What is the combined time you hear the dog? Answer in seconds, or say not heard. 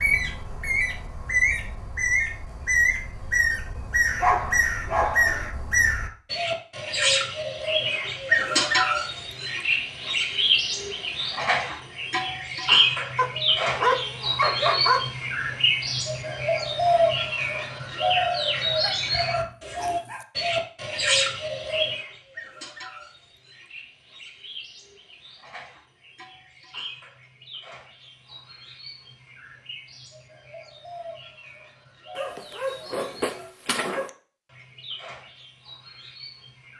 7 s.